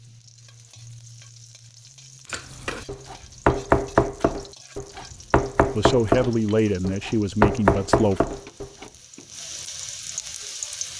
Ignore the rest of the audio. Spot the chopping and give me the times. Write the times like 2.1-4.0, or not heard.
2.3-8.7.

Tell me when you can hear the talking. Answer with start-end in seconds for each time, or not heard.
5.7-8.2.